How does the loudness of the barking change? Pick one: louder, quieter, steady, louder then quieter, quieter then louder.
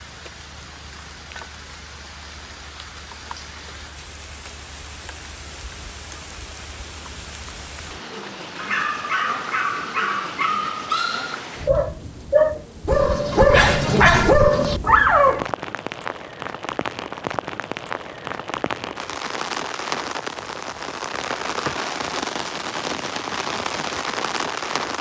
louder.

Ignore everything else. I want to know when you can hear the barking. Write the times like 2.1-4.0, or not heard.
8.6-15.5.